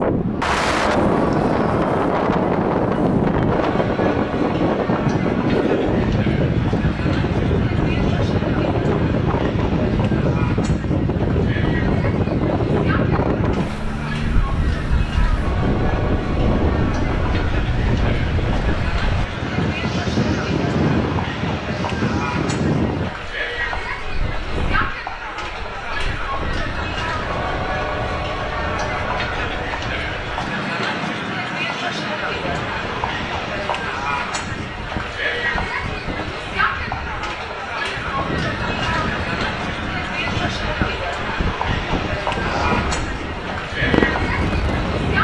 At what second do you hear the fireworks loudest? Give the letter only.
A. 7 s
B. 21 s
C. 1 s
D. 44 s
D.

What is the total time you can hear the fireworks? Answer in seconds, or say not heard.
3 s.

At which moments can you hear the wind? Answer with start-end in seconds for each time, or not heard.
0.0-45.1.